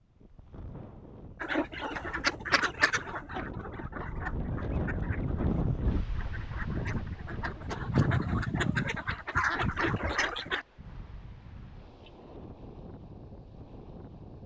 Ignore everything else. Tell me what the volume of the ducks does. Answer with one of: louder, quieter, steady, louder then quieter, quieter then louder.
quieter then louder.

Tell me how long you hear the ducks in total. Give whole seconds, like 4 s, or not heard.
9 s.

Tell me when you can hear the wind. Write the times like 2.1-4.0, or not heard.
0.0-14.4.